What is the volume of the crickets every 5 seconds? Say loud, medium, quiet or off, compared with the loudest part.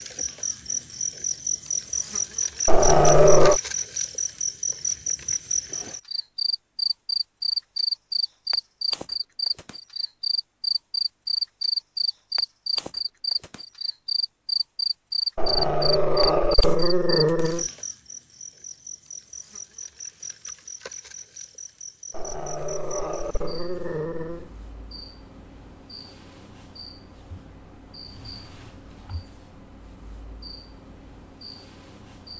loud, loud, loud, loud, quiet, quiet, quiet.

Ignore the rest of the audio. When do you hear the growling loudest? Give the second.
3 s.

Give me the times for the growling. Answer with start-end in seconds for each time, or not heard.
2.6-3.6, 15.3-17.6, 22.1-24.5.